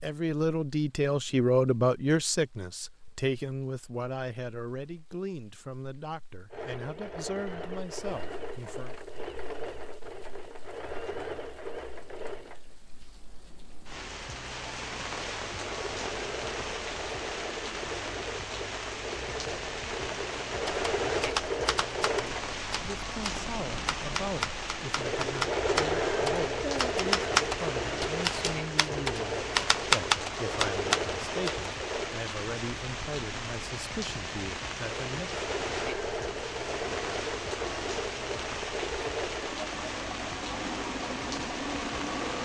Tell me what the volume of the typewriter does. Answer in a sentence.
The volume of the typewriter goes up.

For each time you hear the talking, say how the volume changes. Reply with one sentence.
You can hear the talking from 0.0 to 8.9 s, getting quieter; and from 22.7 to 35.5 s, at a steady volume.